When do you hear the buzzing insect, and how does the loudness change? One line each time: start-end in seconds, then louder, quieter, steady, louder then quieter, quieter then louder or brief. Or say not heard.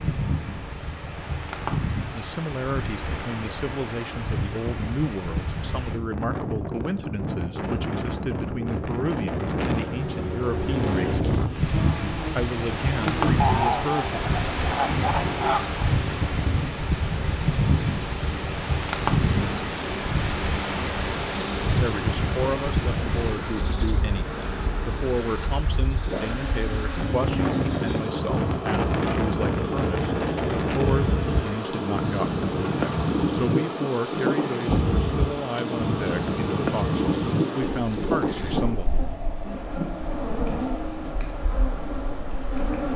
10.6-42.9 steady.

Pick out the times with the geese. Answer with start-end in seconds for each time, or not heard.
13.3-15.8.